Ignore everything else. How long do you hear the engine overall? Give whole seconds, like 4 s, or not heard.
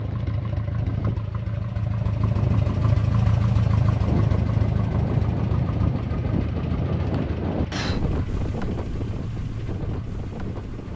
11 s.